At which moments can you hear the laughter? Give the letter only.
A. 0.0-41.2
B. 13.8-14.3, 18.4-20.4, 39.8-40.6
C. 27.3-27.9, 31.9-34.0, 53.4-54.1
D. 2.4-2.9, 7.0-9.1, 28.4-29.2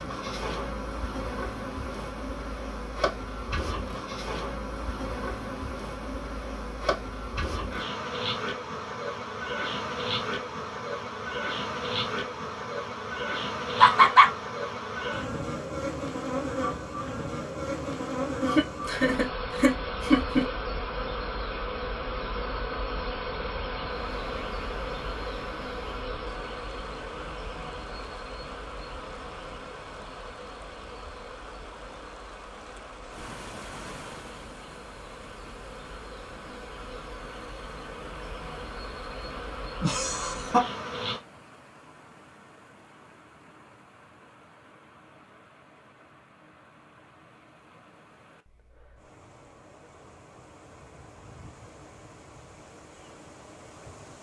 B.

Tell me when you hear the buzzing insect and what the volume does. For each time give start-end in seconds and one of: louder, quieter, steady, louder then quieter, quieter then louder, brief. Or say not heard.
0.0-41.2 quieter.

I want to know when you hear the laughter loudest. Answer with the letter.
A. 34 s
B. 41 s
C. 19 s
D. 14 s
D.